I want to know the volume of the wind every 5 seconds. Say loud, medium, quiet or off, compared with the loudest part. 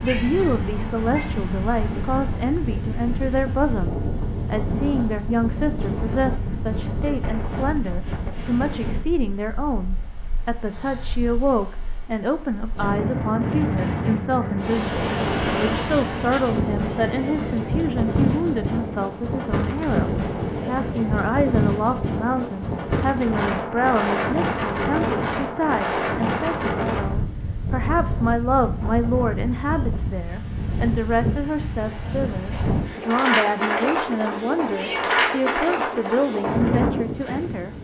medium, medium, medium, loud, loud, loud, loud, loud.